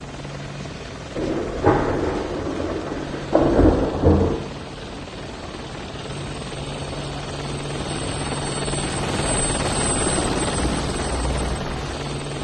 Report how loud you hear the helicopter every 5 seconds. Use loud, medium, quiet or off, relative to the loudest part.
medium, loud, loud.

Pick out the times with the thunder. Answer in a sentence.
You can hear the thunder from 1.1 to 4.4 s.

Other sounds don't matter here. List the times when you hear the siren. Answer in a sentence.
You can't hear the siren here.